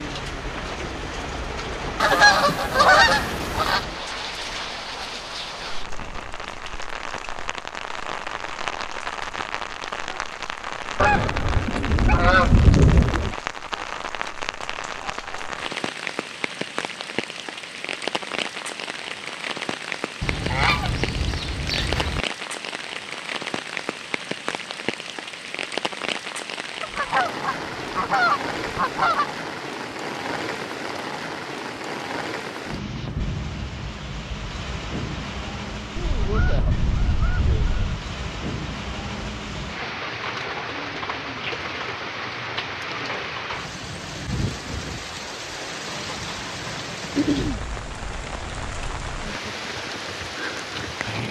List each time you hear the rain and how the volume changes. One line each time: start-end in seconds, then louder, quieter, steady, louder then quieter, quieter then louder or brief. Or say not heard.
0.0-51.2 steady.